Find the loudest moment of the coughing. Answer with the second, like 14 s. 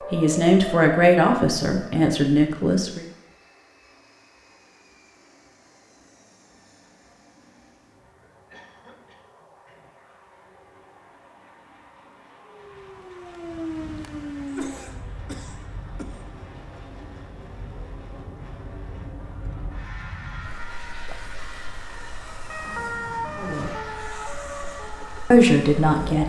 15 s.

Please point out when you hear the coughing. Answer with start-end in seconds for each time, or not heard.
8.3-9.9, 14.4-16.2.